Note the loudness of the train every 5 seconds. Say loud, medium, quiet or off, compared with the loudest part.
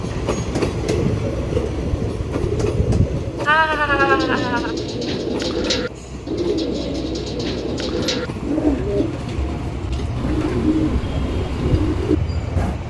loud, medium, loud.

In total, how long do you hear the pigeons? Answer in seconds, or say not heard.
12 s.